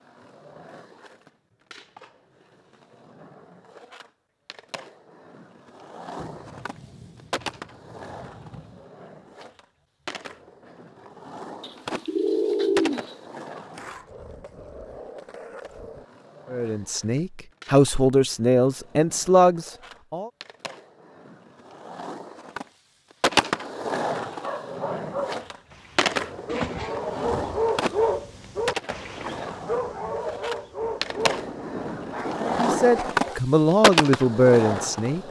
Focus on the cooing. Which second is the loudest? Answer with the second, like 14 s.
13 s.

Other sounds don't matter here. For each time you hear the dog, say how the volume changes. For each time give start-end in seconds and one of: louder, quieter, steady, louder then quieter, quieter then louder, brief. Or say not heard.
24.4-33.4 louder then quieter.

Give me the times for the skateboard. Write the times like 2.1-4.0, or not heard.
0.0-35.2.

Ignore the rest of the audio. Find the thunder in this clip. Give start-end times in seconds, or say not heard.
6.2-8.8, 30.8-32.6.